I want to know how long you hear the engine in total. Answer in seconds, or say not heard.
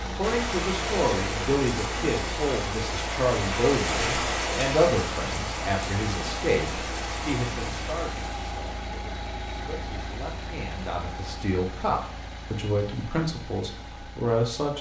15 s.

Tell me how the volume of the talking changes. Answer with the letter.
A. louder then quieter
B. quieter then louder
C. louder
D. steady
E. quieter
B.